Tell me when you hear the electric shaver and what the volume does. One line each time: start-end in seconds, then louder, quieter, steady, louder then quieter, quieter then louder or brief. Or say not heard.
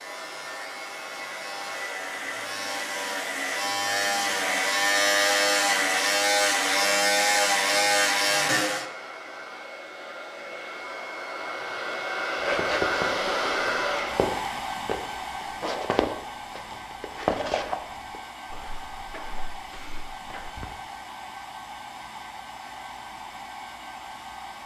0.0-8.8 louder.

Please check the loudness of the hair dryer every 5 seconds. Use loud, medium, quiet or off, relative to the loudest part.
medium, medium, loud, medium, medium.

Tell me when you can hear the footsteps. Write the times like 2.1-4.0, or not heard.
12.3-20.8.